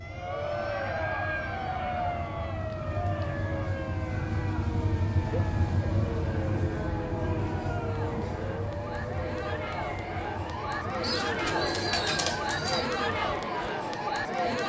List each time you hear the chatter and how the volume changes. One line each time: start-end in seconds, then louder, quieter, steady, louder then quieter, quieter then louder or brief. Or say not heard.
0.0-14.6 quieter then louder.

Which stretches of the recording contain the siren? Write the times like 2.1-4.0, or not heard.
0.0-14.6.